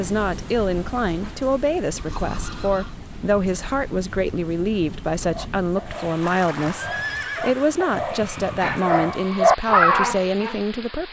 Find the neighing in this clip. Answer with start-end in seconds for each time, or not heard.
1.9-3.0, 6.2-7.8.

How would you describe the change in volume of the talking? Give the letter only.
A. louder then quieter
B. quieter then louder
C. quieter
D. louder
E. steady
E.